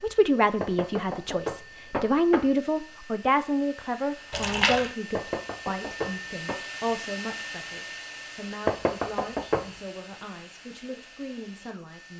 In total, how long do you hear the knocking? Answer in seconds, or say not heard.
4 s.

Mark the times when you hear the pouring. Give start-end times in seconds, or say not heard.
4.3-4.9.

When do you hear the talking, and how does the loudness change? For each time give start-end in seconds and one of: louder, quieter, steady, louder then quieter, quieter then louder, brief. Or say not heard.
0.0-12.1 quieter.